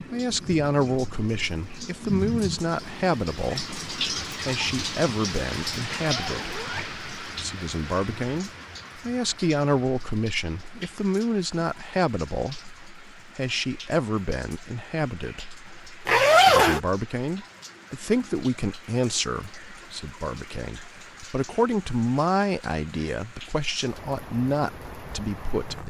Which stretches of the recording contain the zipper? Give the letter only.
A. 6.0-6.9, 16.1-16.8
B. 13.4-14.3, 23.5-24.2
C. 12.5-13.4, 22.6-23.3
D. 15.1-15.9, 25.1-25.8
A.